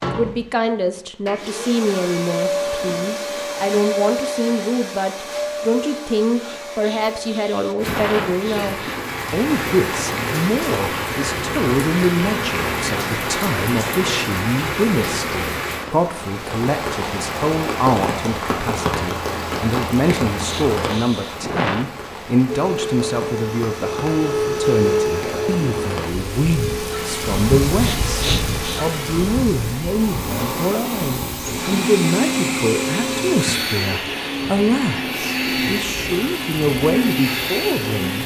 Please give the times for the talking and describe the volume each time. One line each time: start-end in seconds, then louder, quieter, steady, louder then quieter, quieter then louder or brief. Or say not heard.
0.1-38.2 steady.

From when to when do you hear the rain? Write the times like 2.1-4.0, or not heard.
7.8-38.2.